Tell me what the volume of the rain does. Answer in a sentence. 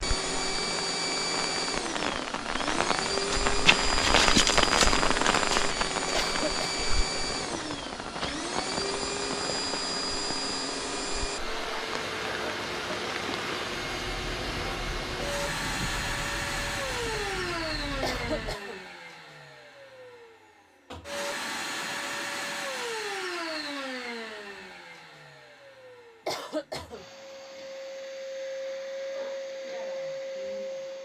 The volume of the rain goes down.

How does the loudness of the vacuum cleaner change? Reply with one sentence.
The volume of the vacuum cleaner goes down.